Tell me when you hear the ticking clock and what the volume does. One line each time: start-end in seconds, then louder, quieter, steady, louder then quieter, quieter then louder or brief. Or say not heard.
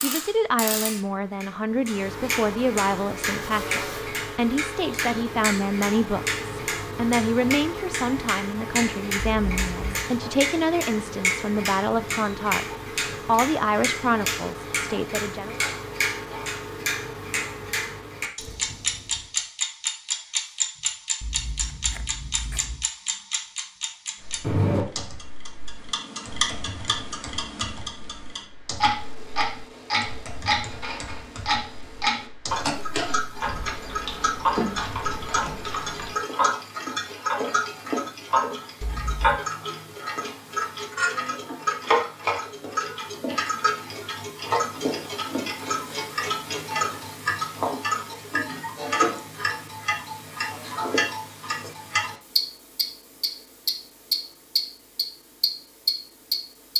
0.0-56.7 steady.